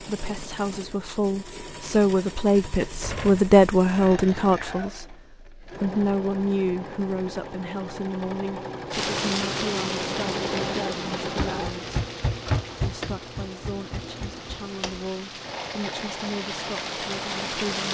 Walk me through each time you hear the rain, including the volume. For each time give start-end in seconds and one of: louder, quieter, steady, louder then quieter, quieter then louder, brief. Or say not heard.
8.9-17.8 quieter then louder.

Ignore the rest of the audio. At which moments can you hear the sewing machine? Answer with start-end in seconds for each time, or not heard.
0.0-17.8.